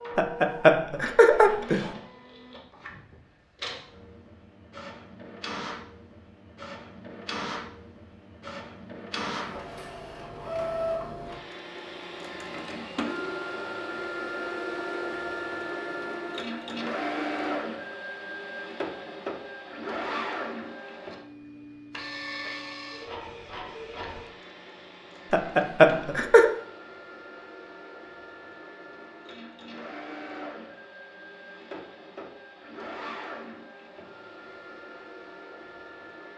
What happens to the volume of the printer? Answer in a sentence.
The volume of the printer goes up, then down.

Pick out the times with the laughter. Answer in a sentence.
The laughter can be heard from 0.1 to 1.9 s and from 25.3 to 26.5 s.